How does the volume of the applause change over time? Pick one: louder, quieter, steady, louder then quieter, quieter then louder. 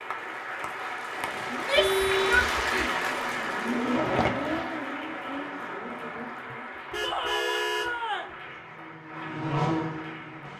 quieter.